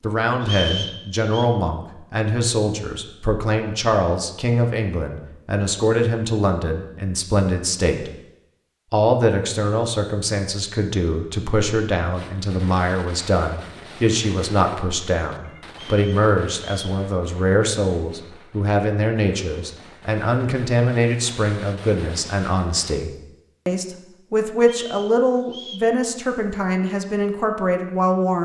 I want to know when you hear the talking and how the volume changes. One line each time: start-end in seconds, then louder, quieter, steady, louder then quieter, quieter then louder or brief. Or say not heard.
0.0-8.1 steady
8.9-28.3 steady.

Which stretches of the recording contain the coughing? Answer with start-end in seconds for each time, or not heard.
not heard.